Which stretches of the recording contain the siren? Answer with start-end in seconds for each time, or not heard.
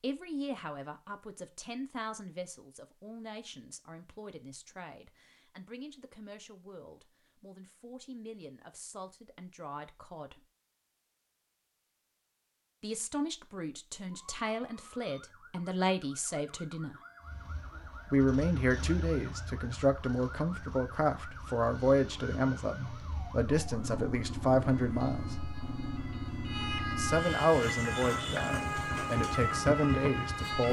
14.1-30.6.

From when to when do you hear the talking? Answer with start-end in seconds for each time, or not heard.
0.0-10.4, 12.8-16.9, 18.1-25.4, 26.9-30.6.